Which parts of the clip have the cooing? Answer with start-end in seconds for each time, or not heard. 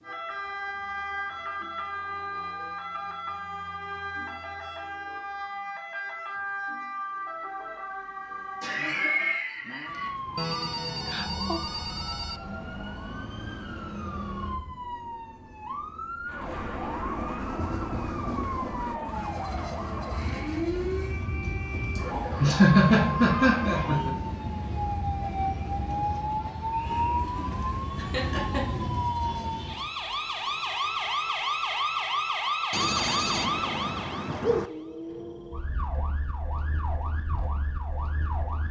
not heard.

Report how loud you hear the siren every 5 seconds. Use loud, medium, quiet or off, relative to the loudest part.
medium, medium, medium, medium, loud, loud, loud, medium.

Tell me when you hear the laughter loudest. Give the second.
23 s.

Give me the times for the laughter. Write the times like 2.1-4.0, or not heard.
8.6-10.1, 21.9-24.1, 27.9-28.9.